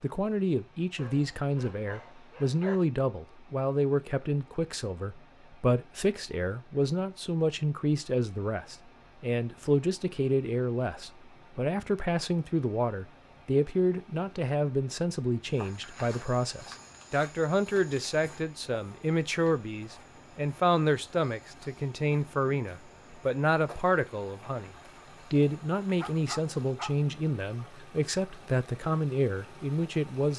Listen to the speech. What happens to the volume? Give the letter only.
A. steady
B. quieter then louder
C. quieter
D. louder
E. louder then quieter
A.